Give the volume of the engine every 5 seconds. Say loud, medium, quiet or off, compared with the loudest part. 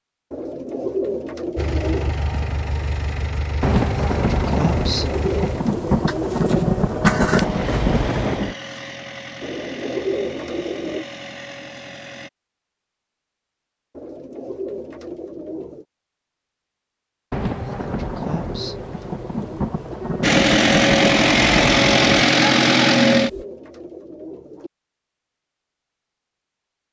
quiet, quiet, quiet, off, loud, off.